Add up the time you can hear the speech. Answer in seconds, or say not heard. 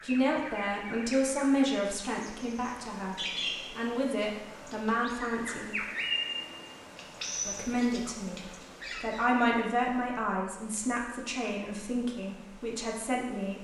11 s.